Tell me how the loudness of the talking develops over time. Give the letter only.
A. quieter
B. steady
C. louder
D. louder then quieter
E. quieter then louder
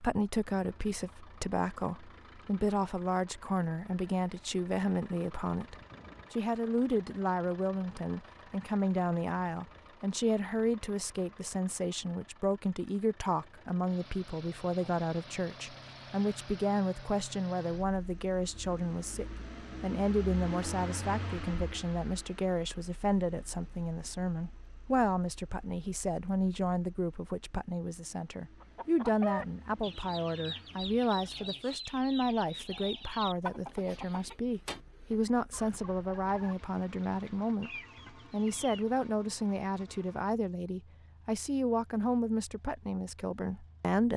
B.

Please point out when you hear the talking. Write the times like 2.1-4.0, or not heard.
0.0-44.1.